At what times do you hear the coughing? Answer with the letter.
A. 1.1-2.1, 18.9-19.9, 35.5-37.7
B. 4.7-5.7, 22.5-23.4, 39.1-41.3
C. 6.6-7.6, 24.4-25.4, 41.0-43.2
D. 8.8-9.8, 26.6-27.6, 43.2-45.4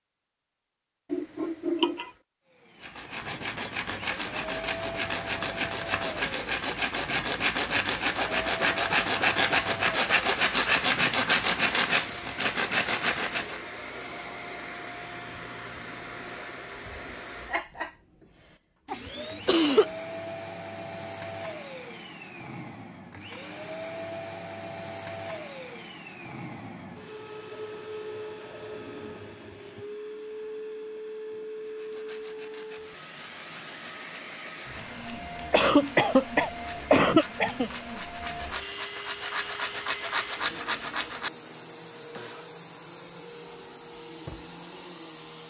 A.